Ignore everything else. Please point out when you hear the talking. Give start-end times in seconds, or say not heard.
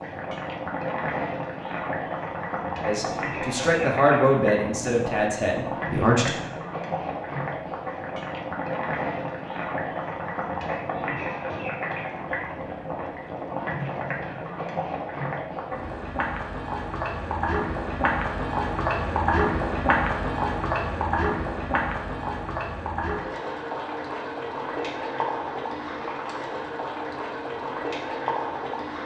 2.9-6.3.